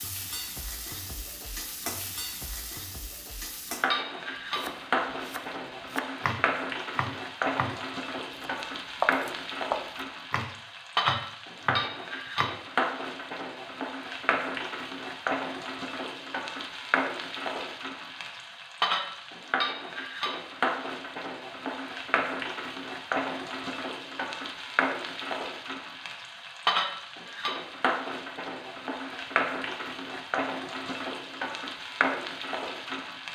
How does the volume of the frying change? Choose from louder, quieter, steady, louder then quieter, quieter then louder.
steady.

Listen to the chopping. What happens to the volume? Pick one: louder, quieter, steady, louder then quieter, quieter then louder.
louder.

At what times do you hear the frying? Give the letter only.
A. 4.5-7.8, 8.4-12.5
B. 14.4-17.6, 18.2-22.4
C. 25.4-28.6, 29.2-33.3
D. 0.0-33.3
D.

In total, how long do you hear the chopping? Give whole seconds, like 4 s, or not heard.
7 s.